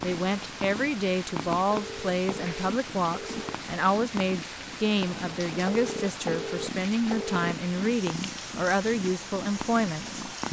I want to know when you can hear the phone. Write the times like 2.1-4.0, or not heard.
1.7-3.5, 5.7-7.5.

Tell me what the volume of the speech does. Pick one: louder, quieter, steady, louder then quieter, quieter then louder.
steady.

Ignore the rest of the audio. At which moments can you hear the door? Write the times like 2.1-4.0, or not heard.
not heard.